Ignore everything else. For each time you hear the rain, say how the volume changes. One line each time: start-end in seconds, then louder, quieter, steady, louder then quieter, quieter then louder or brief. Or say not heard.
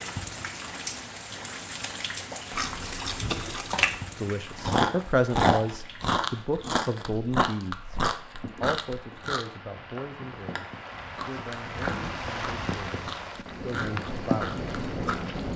0.0-15.5 quieter then louder.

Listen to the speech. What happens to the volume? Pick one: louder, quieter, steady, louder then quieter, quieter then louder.
quieter.